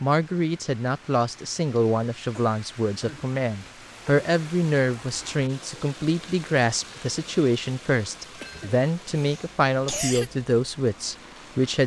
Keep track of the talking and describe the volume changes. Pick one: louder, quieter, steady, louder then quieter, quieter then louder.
steady.